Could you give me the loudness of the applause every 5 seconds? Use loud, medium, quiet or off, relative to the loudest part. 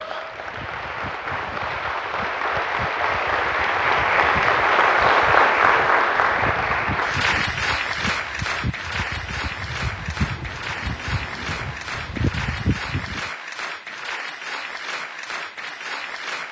loud, loud, medium, medium.